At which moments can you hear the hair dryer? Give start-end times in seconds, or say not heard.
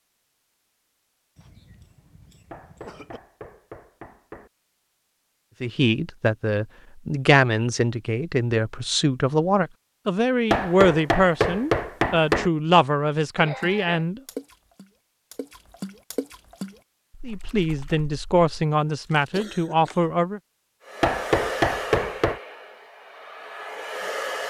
20.8-24.4.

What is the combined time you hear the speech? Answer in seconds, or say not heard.
12 s.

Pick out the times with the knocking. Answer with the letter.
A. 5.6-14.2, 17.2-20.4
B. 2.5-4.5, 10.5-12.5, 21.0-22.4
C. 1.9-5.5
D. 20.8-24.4
B.